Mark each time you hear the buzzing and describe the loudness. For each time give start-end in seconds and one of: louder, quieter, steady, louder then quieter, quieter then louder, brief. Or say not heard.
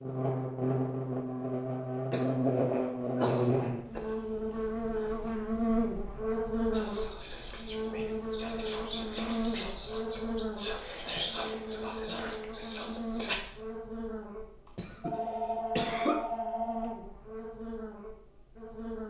0.0-19.0 quieter.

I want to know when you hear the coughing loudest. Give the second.
16 s.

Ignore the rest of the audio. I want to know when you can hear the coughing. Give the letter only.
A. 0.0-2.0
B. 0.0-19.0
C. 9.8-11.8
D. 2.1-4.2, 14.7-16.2
D.